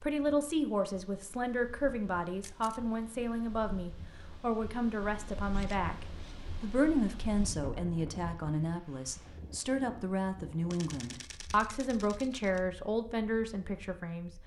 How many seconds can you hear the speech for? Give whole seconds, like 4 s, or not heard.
14 s.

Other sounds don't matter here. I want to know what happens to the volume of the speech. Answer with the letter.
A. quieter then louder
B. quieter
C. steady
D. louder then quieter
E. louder
C.